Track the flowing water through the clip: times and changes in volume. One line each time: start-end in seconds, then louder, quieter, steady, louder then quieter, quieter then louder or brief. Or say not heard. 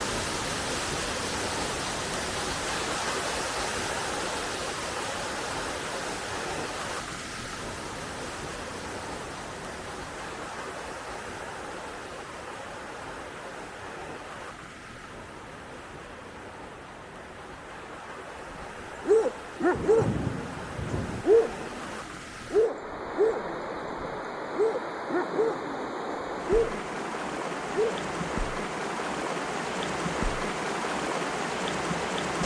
0.0-32.4 quieter then louder.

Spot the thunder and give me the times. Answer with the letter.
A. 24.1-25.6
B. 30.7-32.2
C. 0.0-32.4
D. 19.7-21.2
D.